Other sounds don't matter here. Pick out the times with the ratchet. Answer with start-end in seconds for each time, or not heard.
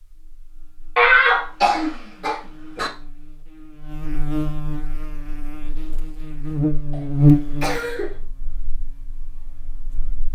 not heard.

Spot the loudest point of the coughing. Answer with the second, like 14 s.
1 s.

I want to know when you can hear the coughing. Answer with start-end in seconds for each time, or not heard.
0.9-2.9, 6.9-8.2.